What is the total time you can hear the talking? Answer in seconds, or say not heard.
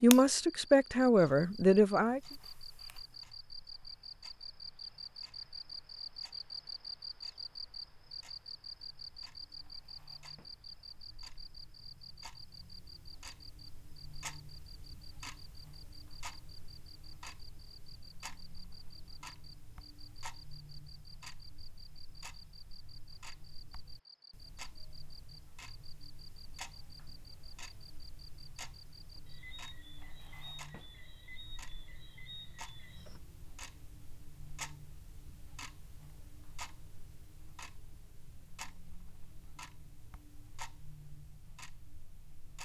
2 s.